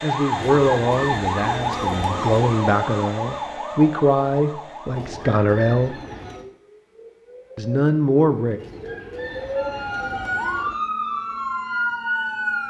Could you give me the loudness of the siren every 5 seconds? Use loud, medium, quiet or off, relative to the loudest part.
loud, medium, loud.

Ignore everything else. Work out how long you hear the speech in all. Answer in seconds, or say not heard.
7 s.